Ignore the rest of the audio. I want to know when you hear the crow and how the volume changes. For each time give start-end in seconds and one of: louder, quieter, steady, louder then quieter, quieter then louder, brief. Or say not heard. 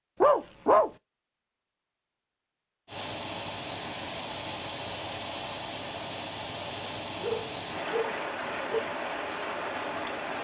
not heard.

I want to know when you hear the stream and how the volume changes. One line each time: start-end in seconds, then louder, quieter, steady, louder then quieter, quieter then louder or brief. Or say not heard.
2.9-10.3 steady.